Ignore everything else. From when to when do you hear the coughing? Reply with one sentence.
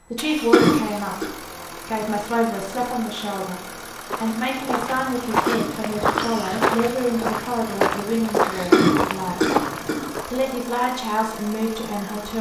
You can hear the coughing from 0.5 to 1.2 s, from 5.5 to 6.3 s and from 8.7 to 10.1 s.